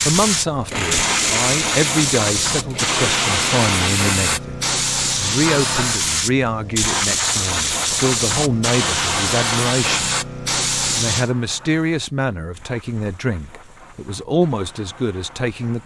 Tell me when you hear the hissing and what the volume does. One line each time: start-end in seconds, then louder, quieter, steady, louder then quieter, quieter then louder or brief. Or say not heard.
0.0-15.8 quieter.